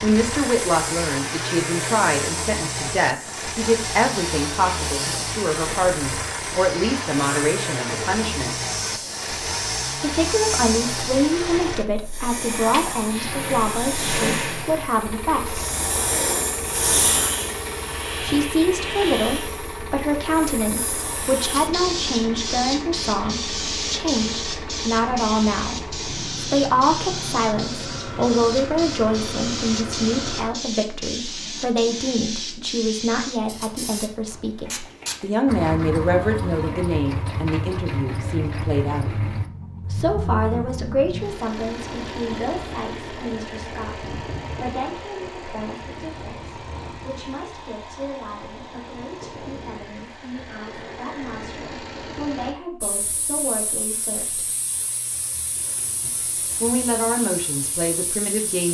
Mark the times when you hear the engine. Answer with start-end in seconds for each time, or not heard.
0.0-30.5, 35.5-52.5.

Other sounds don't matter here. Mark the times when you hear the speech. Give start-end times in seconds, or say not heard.
0.0-8.6, 10.0-15.7, 18.2-39.2, 39.9-54.5, 56.0-58.7.